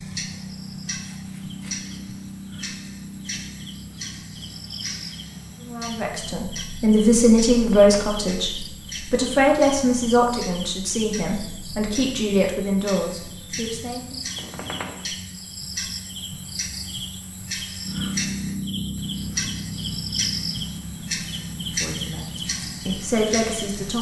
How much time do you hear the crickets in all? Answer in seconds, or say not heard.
24 s.